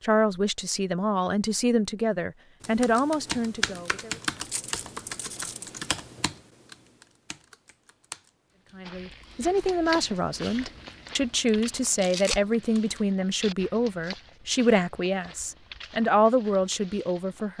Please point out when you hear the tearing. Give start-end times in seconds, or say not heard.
4.5-5.8, 11.9-12.4.